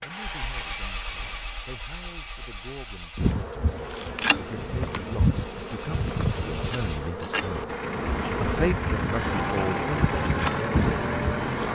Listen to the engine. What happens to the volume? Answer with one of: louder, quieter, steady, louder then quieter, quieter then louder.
quieter then louder.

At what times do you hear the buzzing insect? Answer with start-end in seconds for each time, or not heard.
3.1-11.5.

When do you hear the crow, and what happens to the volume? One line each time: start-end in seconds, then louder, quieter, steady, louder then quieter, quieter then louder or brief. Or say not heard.
not heard.